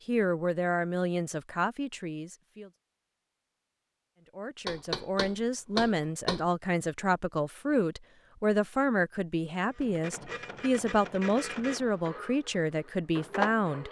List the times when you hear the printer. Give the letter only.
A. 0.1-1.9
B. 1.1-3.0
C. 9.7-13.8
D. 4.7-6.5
C.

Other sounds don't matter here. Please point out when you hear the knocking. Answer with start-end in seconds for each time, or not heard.
4.7-6.5.